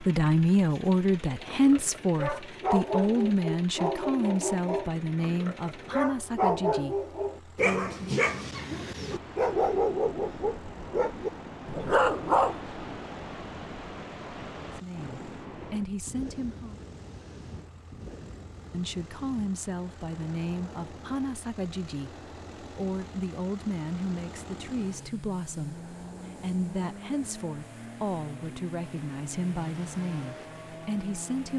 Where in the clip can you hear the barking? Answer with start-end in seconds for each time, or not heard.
1.4-12.9.